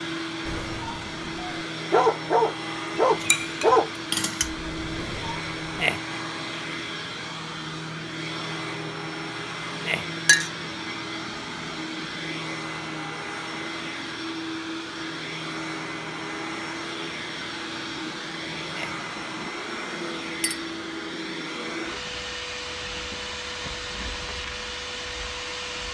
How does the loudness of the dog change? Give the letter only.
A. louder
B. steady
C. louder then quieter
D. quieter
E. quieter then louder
C.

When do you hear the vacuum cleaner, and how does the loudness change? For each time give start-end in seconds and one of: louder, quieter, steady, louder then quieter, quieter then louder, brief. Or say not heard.
0.0-25.8 steady.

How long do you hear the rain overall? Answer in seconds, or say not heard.
not heard.